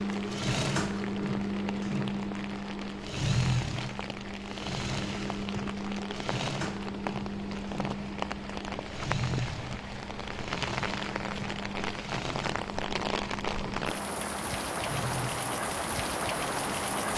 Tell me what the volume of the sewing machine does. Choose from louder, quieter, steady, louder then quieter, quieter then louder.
quieter.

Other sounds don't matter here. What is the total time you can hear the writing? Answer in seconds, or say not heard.
not heard.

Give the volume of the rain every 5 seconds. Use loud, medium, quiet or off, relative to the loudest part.
medium, medium, loud, loud.